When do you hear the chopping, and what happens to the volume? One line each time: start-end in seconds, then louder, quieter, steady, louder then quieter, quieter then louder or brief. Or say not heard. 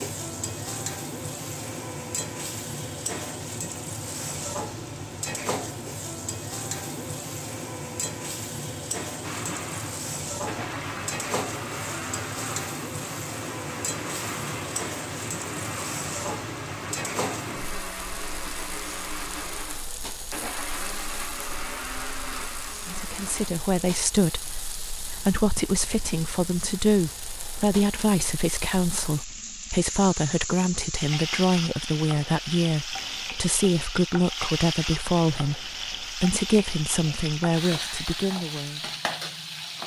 not heard.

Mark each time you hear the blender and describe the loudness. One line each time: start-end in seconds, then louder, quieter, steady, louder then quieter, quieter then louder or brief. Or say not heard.
9.2-23.5 steady.